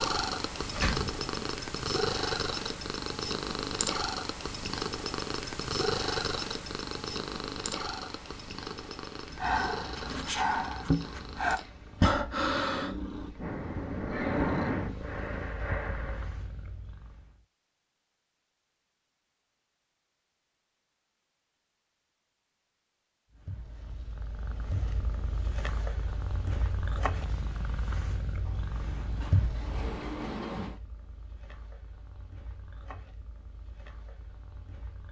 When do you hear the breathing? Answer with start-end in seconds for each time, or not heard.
9.3-16.4.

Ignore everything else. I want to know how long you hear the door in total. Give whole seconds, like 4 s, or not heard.
3 s.